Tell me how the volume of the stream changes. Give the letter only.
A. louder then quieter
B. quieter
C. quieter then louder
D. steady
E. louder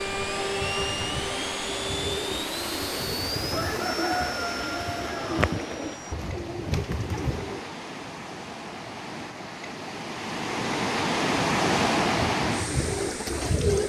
E.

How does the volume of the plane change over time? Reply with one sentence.
The loudness of the plane goes down.